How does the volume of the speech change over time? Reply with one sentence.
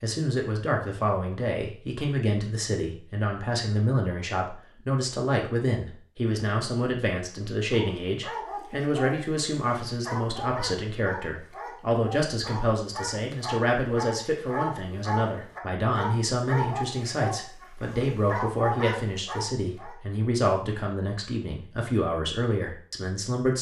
The loudness of the speech stays about the same.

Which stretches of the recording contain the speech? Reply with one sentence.
The speech can be heard from 0.0 to 23.5 s.